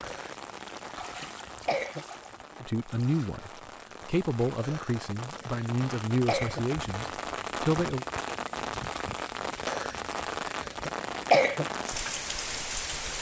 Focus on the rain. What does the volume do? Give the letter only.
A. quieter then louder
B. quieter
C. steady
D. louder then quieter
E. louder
E.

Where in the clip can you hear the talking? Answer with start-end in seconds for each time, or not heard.
2.6-8.1.